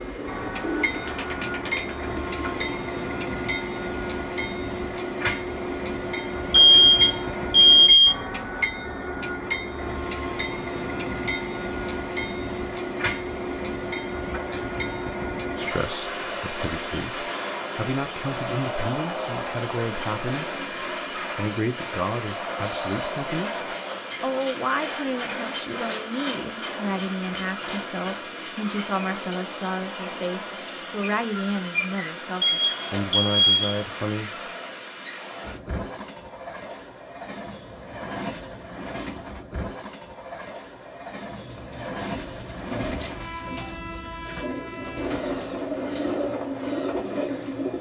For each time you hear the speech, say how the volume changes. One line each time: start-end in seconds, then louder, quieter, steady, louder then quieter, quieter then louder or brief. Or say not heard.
15.6-34.5 steady.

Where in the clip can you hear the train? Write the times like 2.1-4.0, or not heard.
0.0-47.7.